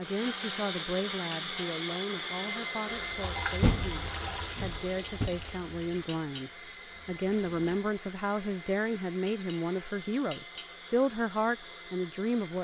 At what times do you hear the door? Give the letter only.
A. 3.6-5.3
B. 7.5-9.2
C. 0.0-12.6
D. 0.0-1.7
A.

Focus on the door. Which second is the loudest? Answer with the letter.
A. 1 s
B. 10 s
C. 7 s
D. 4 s
D.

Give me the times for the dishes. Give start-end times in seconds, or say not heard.
0.2-1.7, 5.0-6.5, 9.2-10.7.